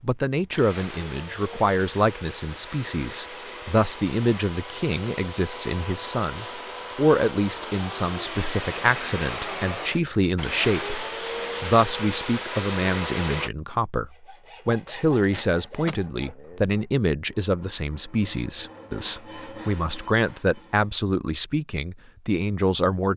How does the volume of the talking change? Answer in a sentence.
The volume of the talking stays about the same.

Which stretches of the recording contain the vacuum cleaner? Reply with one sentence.
You can hear the vacuum cleaner from 0.2 to 13.5 s.